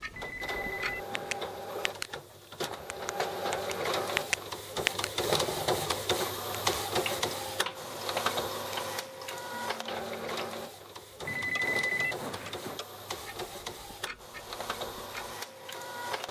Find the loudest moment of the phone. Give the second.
12 s.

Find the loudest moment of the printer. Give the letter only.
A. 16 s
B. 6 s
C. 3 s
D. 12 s
B.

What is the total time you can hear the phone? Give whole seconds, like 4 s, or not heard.
3 s.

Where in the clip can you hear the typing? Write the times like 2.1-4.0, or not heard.
not heard.